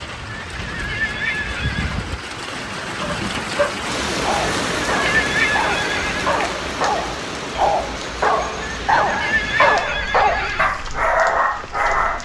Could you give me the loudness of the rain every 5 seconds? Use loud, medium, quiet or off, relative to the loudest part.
loud, loud, medium.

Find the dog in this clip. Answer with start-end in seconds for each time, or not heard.
3.0-12.2.